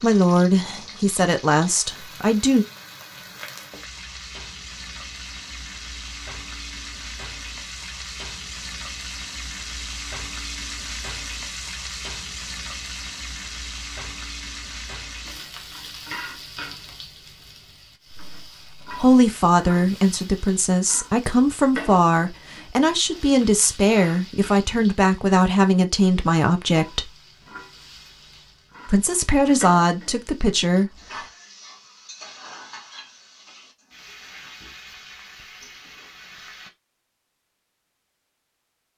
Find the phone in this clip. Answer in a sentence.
The phone can't be heard in this clip.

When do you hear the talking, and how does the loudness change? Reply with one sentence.
You can hear the talking briefly from 0.0 to 2.6 s; from 18.9 to 27.1 s, at a steady volume; and briefly from 28.9 to 31.2 s.